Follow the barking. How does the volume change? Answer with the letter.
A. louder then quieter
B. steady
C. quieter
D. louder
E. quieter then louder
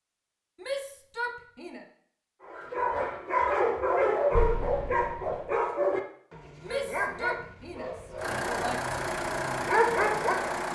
E.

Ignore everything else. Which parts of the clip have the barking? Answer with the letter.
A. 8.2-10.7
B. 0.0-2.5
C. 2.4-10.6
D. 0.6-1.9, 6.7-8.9
C.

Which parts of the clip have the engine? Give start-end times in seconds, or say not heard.
8.2-10.7.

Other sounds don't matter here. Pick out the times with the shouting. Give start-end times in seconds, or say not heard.
0.6-1.9, 6.7-8.9.